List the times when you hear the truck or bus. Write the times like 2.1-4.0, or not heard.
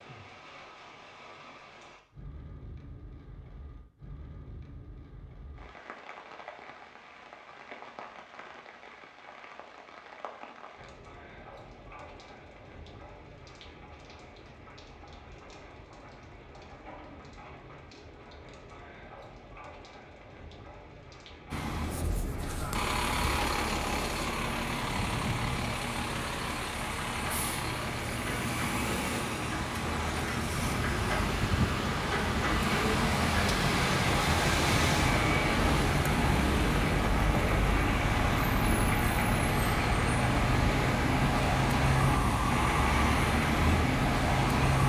21.5-44.8.